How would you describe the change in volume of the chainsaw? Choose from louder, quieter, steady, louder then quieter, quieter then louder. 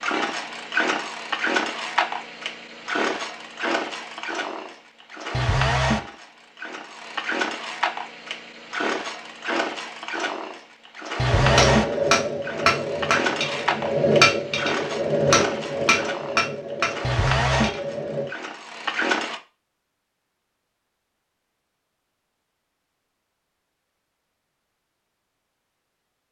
steady.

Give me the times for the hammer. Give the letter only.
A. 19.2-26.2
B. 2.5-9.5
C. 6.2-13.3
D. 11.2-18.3
D.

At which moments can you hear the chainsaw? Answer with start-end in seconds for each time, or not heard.
0.0-19.4.